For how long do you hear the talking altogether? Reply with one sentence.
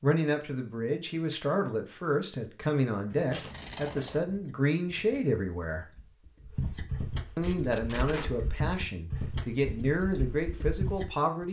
You can hear the talking for 10 seconds altogether.